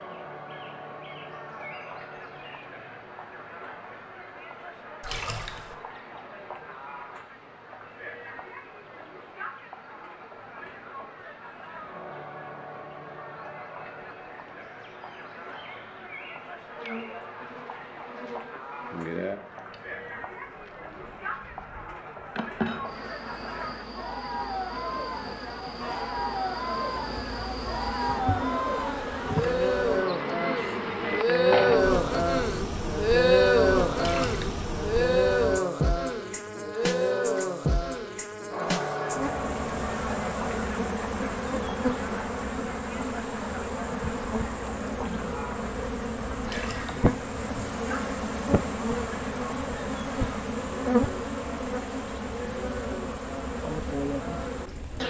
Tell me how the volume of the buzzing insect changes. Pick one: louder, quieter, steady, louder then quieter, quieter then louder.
louder.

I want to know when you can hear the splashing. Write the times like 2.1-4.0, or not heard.
5.0-5.8, 34.0-34.6, 46.4-47.0.